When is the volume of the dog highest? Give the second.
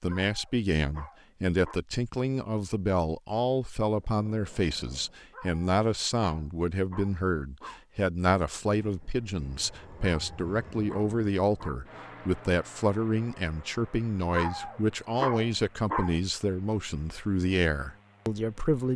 15 s.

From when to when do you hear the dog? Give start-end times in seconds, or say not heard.
0.1-1.8, 5.3-7.8, 10.0-11.8, 14.3-16.1.